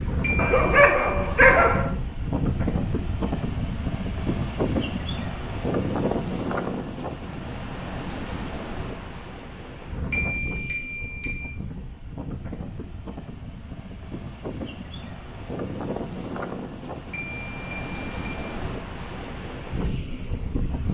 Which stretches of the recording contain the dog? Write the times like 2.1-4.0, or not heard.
0.3-1.9.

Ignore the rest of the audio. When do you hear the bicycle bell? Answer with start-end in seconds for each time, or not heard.
0.2-1.1, 10.1-11.4, 17.1-18.4.